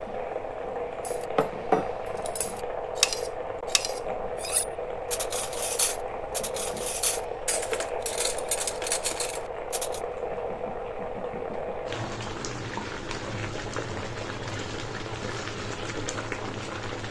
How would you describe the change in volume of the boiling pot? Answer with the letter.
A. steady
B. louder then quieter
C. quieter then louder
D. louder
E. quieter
A.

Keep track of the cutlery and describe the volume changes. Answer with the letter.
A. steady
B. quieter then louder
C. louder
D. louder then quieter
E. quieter
E.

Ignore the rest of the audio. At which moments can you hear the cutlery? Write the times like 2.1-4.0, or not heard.
1.1-10.0.